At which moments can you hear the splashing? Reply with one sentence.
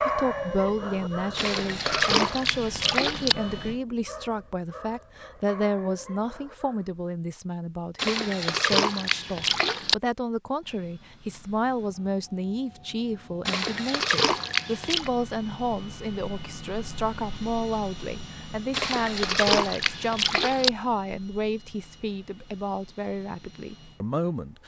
You can hear the splashing from 1.4 to 3.4 s, from 8.0 to 9.9 s, from 13.4 to 15.1 s and from 18.7 to 20.7 s.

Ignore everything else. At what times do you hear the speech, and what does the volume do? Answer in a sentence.
You can hear the speech from 0.0 to 24.6 s, at a steady volume.